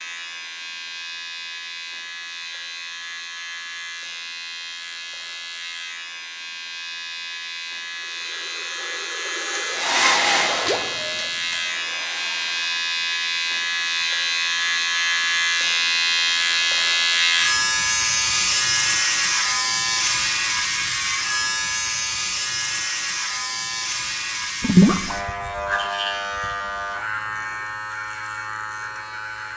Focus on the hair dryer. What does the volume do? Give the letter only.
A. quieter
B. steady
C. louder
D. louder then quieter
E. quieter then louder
D.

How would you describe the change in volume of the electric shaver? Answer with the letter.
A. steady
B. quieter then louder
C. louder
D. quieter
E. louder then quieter
E.